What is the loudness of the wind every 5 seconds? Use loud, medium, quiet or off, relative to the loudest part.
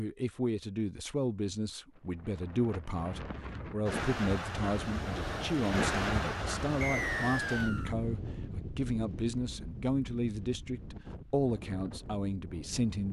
loud, loud, medium.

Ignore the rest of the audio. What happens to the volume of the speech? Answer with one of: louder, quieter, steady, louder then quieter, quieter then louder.
steady.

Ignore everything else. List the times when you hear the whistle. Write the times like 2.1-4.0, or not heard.
6.8-7.9.